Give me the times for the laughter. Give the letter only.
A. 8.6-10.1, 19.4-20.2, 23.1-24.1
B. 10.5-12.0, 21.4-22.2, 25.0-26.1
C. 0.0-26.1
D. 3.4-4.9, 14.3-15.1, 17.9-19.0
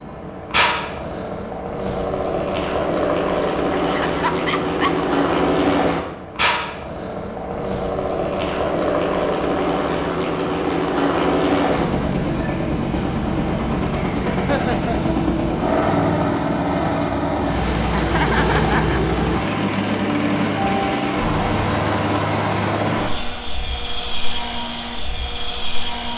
D.